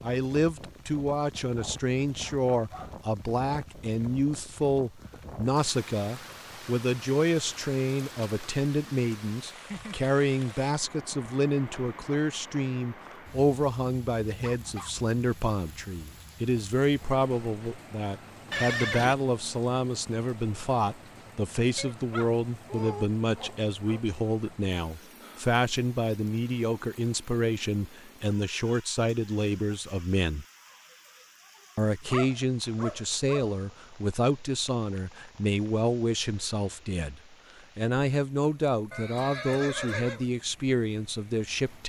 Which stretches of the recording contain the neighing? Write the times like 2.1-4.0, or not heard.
18.5-19.1, 38.9-40.2.